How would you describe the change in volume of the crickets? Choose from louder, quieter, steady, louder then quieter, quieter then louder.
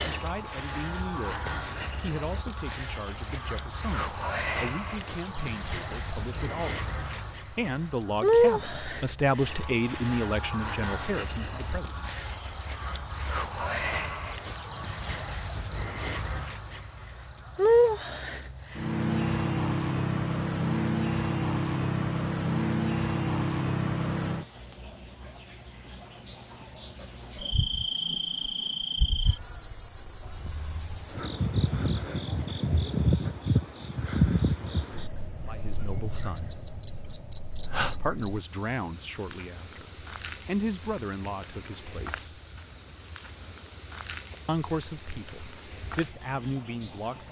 steady.